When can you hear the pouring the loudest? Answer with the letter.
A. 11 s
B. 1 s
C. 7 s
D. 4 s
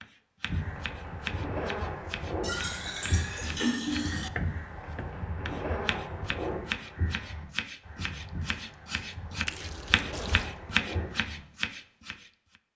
D.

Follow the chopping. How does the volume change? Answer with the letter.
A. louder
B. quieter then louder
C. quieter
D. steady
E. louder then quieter
A.